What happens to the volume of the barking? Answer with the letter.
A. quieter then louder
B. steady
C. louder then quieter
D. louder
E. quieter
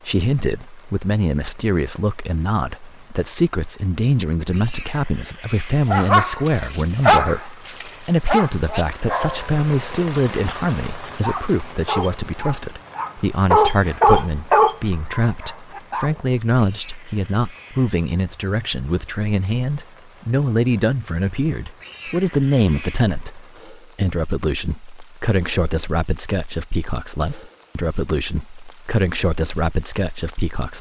A.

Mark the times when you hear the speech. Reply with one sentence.
You can hear the speech from 0.1 to 30.7 s.